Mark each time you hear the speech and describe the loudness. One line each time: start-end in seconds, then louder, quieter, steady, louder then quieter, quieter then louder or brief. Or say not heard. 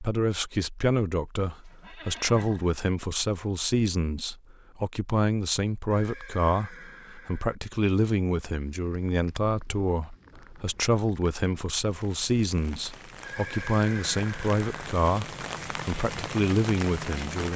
0.0-17.5 steady.